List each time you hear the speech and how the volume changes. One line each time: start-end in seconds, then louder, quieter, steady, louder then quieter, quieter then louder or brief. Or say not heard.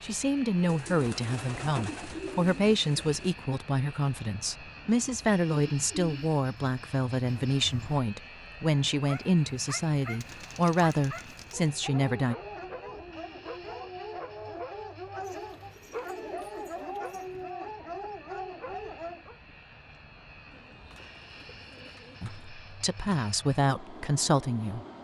0.0-12.3 steady
22.2-24.9 brief.